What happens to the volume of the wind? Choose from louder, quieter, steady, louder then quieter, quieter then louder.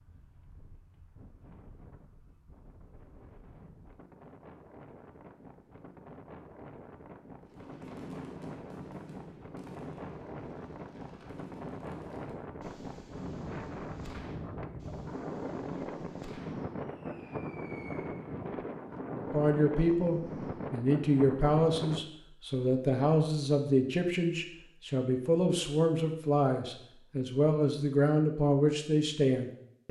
louder.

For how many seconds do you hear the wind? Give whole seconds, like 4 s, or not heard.
22 s.